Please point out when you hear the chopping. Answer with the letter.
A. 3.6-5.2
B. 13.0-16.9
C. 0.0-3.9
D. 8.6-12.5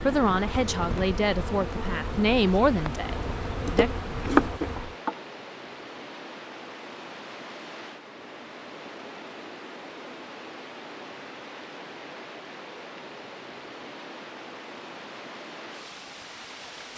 A.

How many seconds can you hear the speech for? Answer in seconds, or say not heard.
4 s.